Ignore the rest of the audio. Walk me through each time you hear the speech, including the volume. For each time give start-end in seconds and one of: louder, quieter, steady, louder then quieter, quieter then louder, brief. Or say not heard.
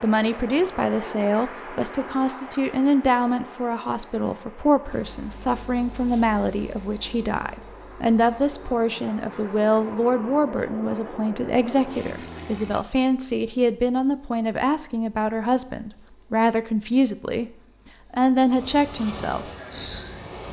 0.0-17.4 steady
18.1-19.5 brief.